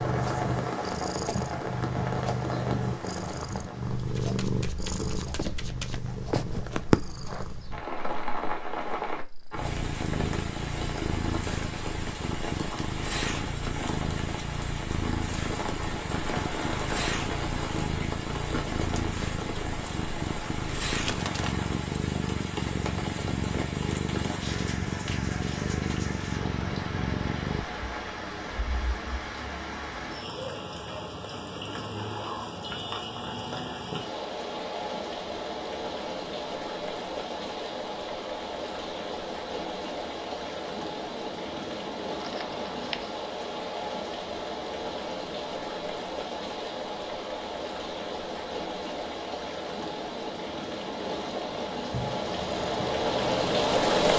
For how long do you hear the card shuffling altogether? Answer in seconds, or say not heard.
4 s.